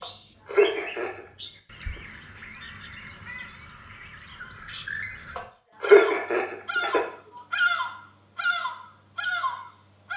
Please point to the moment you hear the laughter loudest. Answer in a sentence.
The loudest moment of the laughter is at 6 seconds.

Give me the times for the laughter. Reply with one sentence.
You can hear the laughter from 0.0 to 1.2 s and from 5.3 to 7.0 s.